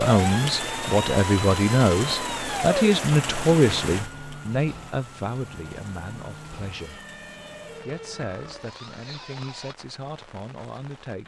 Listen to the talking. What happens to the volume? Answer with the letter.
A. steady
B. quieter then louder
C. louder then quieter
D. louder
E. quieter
E.